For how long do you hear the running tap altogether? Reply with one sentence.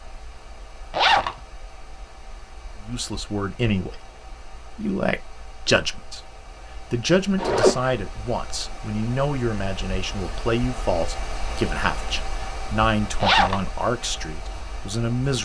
You can't hear the running tap here.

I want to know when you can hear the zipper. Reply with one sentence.
You can hear the zipper from 0.9 to 1.4 s, from 7.3 to 7.9 s and from 13.2 to 13.6 s.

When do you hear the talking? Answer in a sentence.
The talking can be heard from 2.8 to 15.4 s.